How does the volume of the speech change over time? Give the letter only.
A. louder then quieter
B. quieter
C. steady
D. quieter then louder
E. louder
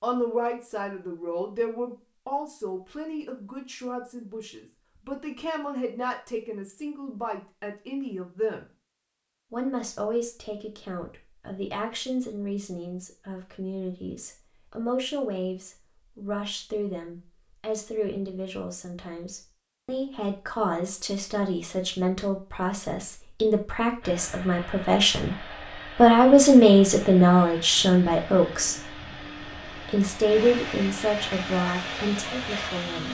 E.